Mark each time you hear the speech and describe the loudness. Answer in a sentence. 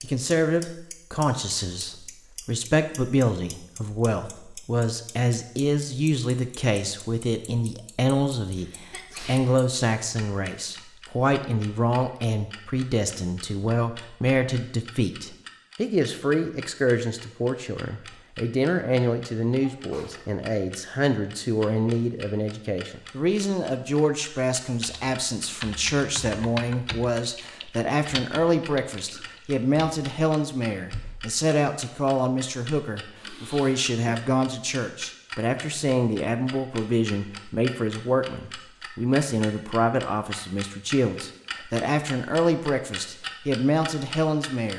The speech can be heard from 0.0 to 44.7 s, at a steady volume.